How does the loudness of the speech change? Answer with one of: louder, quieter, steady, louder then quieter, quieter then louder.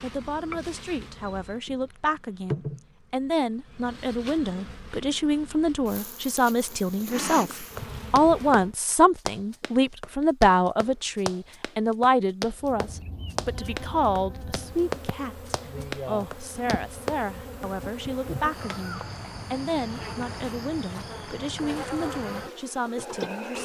louder then quieter.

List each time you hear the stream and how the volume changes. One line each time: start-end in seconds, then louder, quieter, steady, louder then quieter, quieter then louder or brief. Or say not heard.
not heard.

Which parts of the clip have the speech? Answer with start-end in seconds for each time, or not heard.
0.0-23.6.